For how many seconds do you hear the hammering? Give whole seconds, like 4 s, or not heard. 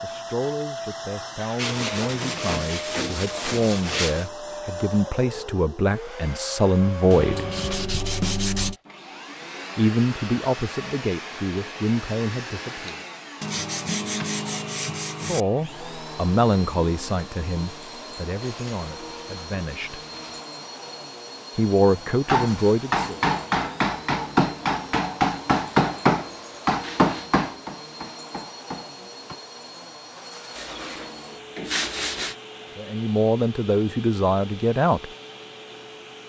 7 s.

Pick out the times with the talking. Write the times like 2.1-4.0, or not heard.
0.0-7.5, 9.8-13.0, 15.2-20.0, 21.6-23.1, 32.8-35.1.